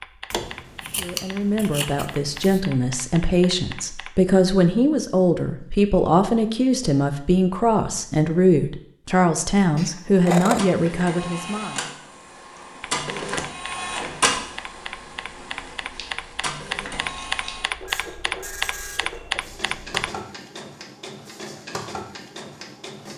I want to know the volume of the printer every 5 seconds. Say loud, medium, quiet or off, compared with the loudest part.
off, off, loud, medium, medium.